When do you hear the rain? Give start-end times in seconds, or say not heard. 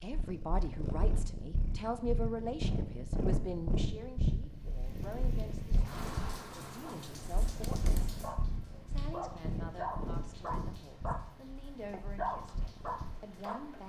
4.5-13.8.